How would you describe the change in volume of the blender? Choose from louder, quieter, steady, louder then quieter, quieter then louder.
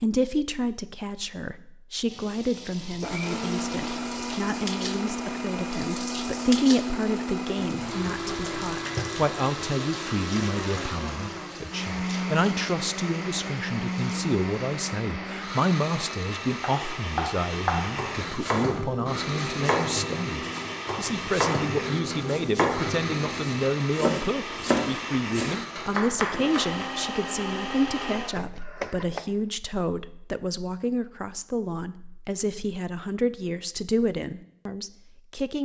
steady.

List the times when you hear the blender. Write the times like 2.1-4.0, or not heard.
2.8-29.3.